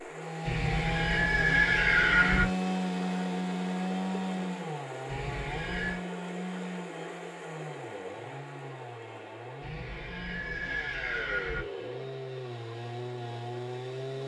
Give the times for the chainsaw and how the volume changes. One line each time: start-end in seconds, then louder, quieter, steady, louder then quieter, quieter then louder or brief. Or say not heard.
0.0-14.2 quieter then louder.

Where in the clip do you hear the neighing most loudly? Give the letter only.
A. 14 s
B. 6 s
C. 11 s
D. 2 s
D.